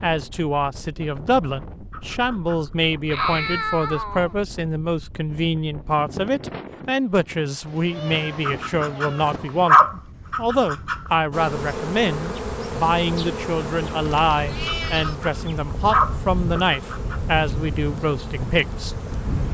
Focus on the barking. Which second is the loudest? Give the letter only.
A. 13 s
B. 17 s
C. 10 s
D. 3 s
C.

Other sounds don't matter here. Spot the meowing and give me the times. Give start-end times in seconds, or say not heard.
3.0-4.3, 7.7-9.7, 14.0-15.2.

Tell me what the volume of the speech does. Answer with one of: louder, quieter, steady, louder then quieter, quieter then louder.
steady.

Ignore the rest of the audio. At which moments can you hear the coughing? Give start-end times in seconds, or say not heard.
not heard.